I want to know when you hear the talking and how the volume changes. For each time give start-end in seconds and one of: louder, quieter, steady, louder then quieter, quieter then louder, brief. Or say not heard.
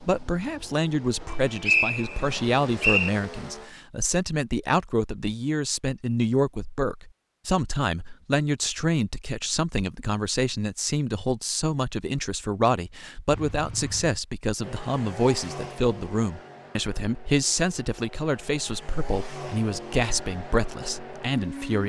0.0-21.8 steady.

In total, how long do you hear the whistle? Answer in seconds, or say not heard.
2 s.